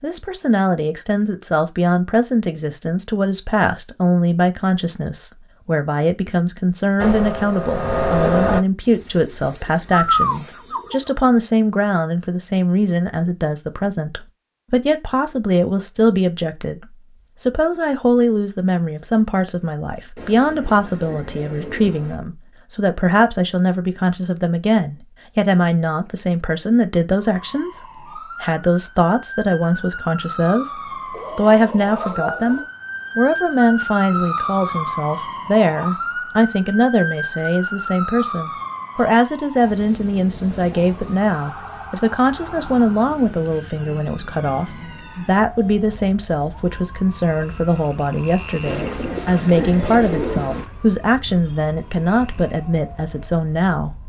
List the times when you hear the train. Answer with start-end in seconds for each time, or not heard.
7.0-8.7.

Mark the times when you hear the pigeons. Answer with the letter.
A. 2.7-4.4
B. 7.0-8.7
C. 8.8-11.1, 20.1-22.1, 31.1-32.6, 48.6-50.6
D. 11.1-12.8
C.